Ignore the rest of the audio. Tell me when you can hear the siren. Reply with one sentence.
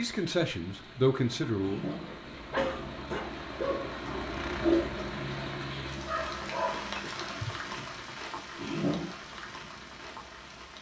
You can't hear the siren here.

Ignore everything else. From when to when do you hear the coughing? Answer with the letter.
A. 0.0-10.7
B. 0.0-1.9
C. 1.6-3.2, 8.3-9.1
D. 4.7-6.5
C.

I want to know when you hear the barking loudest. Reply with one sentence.
The loudest moment of the barking is at 5 seconds.